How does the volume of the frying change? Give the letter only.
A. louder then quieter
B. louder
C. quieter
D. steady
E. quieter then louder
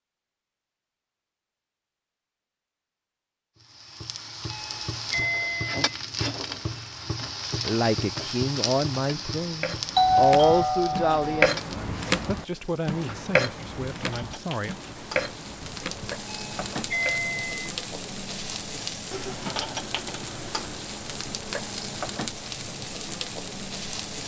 E.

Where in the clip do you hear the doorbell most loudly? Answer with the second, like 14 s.
10 s.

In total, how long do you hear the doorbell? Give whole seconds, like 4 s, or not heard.
4 s.